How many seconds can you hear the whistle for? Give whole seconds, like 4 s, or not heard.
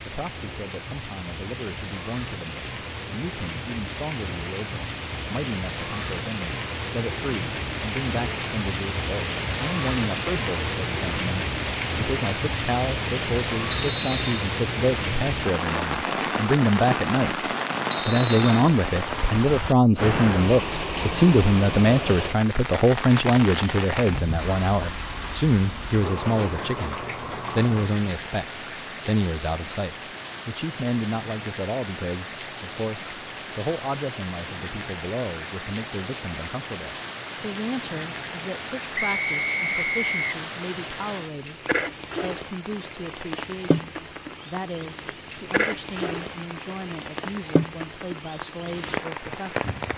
3 s.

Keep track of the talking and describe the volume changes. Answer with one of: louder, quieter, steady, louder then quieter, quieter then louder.
louder then quieter.